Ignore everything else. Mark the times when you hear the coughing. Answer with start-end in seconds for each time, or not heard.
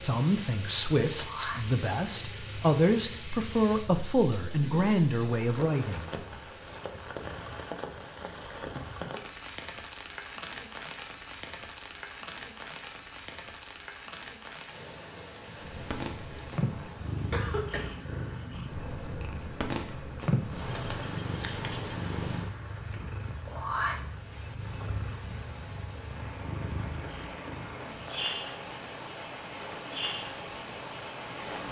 17.3-18.4.